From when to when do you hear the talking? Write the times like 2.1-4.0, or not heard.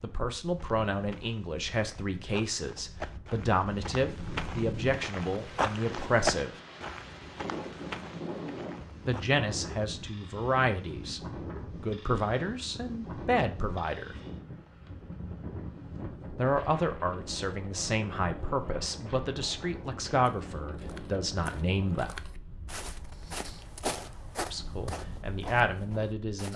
0.0-6.5, 9.1-11.2, 11.8-14.2, 16.4-22.1, 24.5-26.5.